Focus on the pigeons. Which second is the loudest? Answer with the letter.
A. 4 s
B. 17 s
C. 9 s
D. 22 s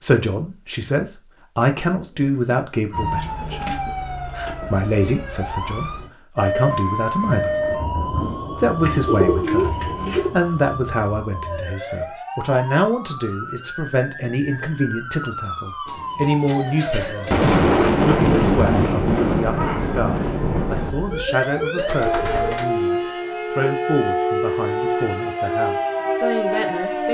C.